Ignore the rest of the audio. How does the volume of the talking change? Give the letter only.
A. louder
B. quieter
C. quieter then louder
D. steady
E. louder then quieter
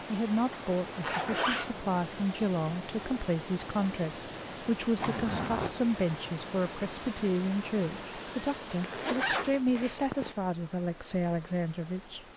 D.